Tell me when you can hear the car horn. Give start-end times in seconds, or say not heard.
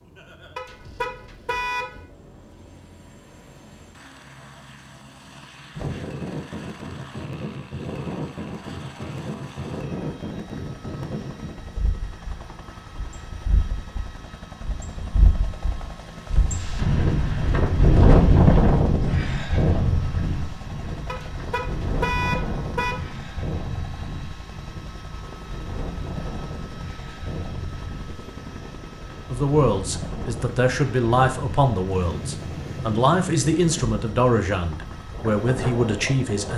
0.6-2.0, 21.1-23.0.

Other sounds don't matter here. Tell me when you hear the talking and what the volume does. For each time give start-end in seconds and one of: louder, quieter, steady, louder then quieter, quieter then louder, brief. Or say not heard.
29.3-36.5 steady.